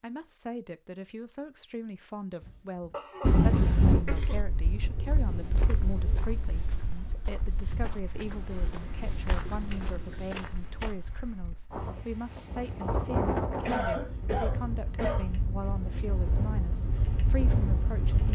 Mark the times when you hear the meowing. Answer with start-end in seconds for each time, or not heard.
not heard.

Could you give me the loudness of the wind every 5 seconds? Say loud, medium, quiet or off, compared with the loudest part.
loud, quiet, medium, medium.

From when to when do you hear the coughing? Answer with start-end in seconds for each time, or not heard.
2.4-4.4, 9.7-10.6, 13.7-15.7.